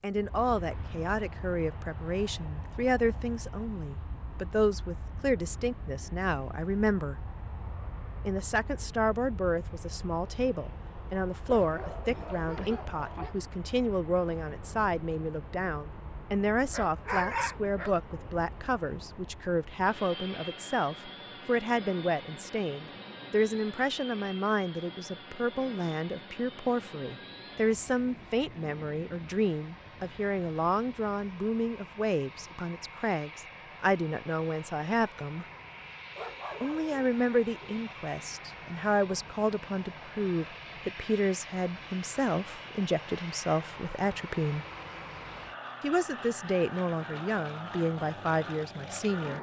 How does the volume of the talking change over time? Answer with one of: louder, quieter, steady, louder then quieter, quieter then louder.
steady.